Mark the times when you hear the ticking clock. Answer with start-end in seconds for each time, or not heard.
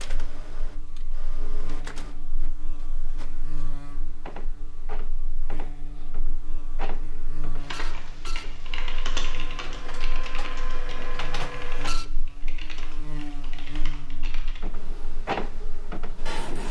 not heard.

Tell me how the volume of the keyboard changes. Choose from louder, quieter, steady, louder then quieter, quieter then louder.
quieter.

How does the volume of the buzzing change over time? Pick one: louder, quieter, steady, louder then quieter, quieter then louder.
louder.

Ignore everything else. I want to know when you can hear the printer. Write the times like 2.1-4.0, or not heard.
0.0-12.1, 14.6-16.6.